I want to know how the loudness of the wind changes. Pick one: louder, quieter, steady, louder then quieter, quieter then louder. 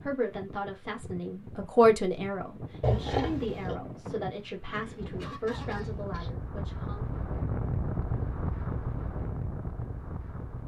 louder.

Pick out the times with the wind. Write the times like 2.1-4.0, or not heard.
0.0-10.6.